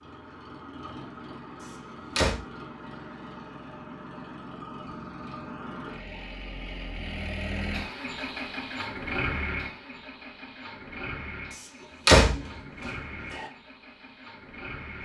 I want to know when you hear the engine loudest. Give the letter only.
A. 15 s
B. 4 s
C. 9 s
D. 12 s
C.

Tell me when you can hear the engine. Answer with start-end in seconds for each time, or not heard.
0.0-15.0.